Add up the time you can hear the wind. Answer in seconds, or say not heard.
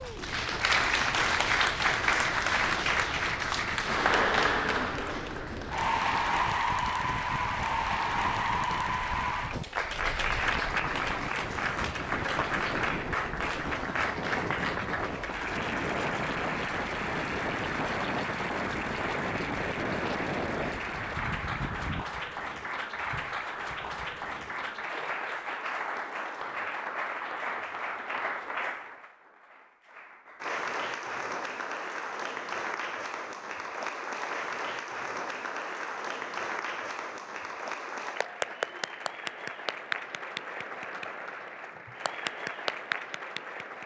22 s.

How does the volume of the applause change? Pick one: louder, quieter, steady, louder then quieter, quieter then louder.
quieter.